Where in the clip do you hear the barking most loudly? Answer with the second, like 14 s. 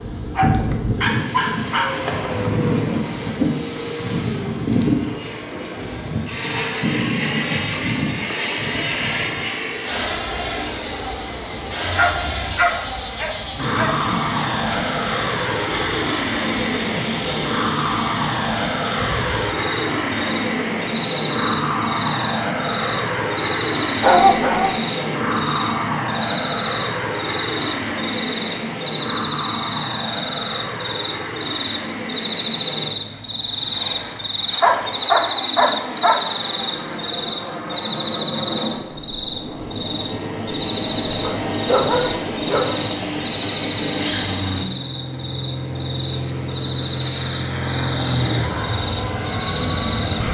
24 s.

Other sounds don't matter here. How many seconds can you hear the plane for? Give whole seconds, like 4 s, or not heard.
50 s.